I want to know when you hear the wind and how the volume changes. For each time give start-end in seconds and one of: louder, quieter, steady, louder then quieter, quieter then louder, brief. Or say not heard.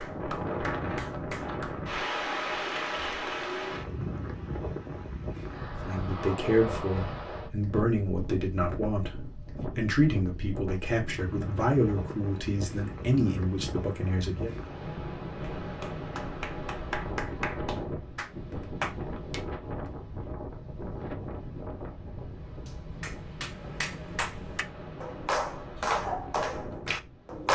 0.0-27.5 quieter.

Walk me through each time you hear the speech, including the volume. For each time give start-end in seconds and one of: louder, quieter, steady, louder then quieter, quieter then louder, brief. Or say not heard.
5.8-14.5 steady.